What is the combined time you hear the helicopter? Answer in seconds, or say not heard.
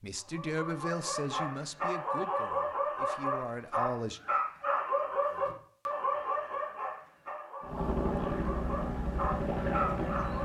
3 s.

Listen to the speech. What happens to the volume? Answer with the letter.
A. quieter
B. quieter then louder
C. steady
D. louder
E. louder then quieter
B.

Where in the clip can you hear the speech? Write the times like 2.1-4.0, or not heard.
0.0-4.2.